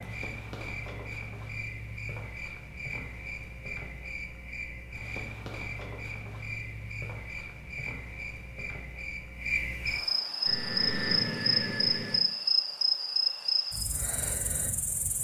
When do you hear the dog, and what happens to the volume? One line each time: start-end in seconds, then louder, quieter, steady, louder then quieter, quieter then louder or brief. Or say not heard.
not heard.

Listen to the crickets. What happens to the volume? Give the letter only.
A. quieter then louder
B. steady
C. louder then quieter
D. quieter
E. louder
E.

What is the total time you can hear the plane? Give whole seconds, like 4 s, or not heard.
2 s.